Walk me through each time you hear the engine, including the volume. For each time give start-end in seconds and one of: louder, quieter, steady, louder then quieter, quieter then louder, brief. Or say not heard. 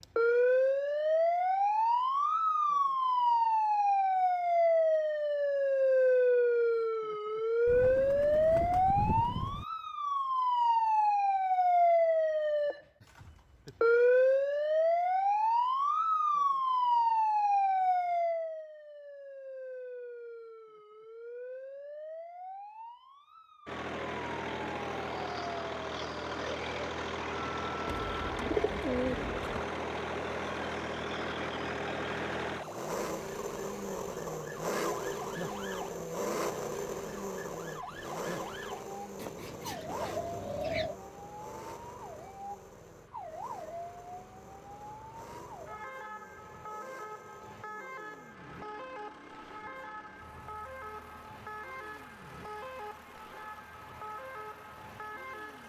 23.6-55.6 quieter.